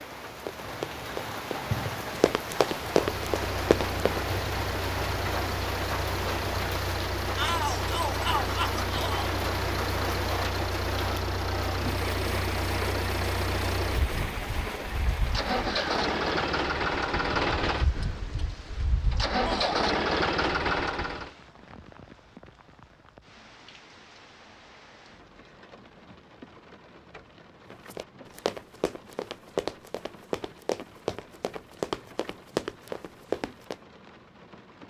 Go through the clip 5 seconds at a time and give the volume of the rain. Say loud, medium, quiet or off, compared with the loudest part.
loud, loud, loud, medium, quiet, quiet, quiet.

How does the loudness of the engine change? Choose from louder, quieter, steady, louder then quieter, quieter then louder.
louder.